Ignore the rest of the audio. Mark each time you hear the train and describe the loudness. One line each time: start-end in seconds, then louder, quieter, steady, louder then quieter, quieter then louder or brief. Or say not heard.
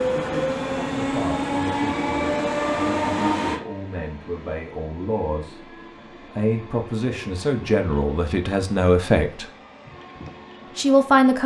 0.0-11.4 quieter.